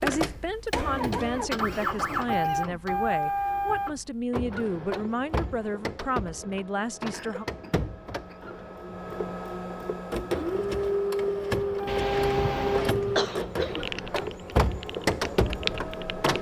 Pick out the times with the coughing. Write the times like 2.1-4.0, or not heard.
1.7-3.2, 7.1-8.4, 11.8-13.9.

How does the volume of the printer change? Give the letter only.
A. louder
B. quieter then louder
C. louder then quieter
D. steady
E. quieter
B.